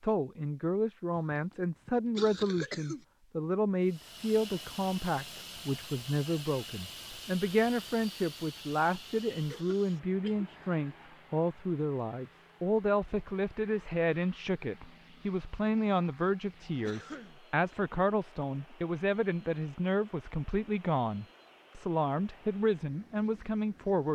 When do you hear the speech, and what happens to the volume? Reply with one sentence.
The speech can be heard from 0.0 to 24.1 s, at a steady volume.